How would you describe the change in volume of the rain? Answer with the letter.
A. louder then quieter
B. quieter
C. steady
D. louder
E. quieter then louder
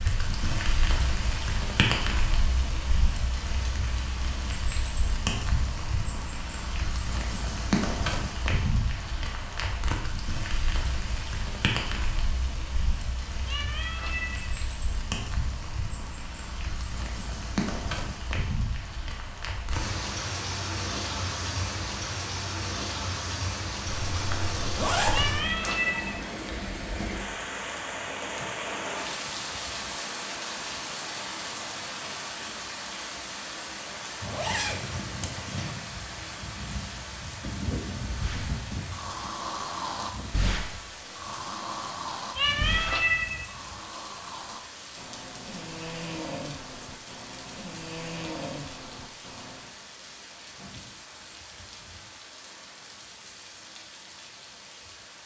B.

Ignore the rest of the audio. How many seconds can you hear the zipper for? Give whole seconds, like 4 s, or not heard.
3 s.